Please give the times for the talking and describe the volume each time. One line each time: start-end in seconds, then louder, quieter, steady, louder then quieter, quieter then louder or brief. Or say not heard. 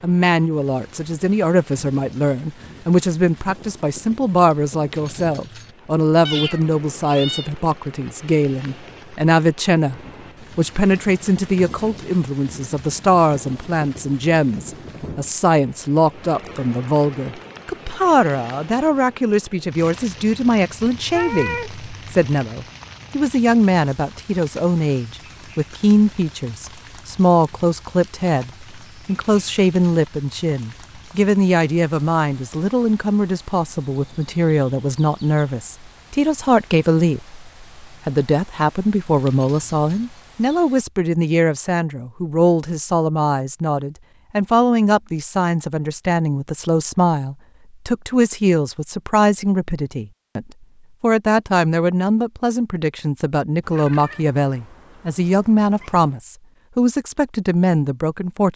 0.0-9.9 steady
10.6-58.5 steady.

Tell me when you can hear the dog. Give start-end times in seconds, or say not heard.
not heard.